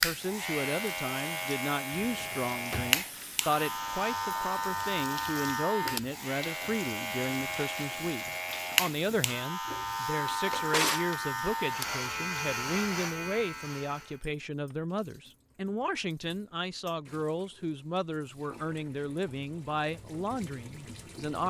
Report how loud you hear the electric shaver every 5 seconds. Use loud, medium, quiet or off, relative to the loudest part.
loud, loud, loud, off, off.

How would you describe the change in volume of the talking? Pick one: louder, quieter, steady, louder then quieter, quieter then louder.
steady.